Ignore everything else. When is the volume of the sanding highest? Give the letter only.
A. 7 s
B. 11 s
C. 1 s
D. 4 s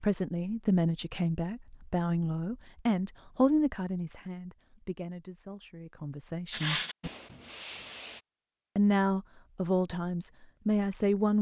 A.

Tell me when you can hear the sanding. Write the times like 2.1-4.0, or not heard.
6.5-8.2.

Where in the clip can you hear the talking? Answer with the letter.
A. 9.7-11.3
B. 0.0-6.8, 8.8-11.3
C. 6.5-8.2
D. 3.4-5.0
B.